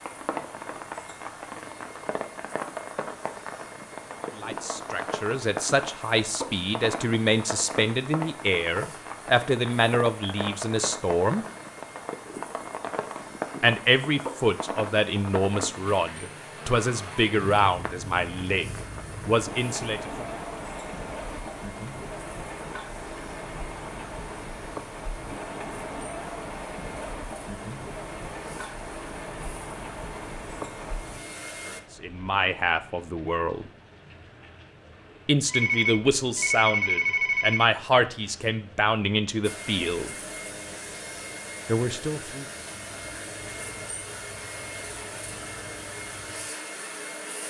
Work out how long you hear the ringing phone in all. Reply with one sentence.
The ringing phone can be heard for 2 seconds in total.